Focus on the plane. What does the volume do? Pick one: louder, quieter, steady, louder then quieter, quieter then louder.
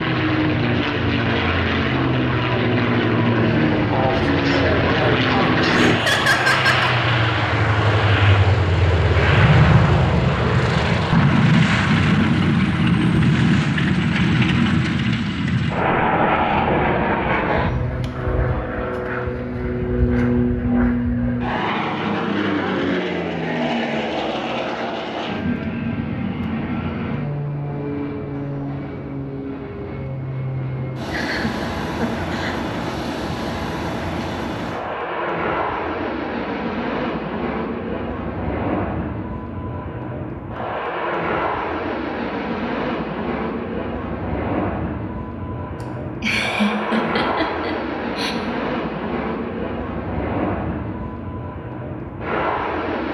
quieter.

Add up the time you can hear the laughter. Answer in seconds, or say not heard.
5 s.